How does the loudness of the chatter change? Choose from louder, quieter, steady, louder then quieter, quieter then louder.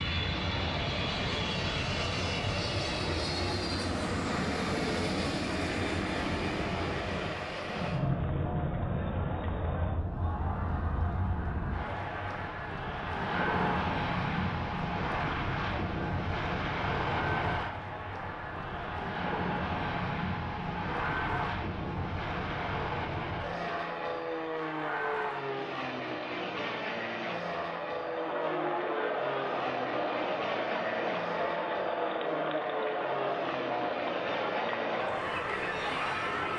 louder.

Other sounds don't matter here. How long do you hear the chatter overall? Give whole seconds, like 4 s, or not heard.
36 s.